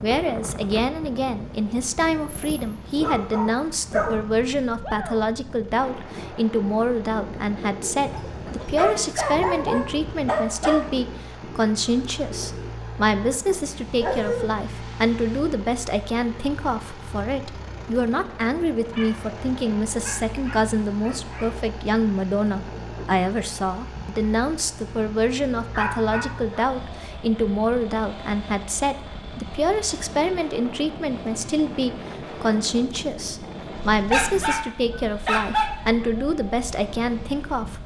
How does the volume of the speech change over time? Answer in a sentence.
The volume of the speech stays about the same.